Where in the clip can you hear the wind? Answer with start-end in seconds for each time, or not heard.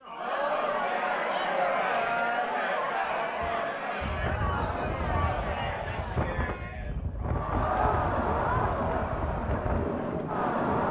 4.0-10.8.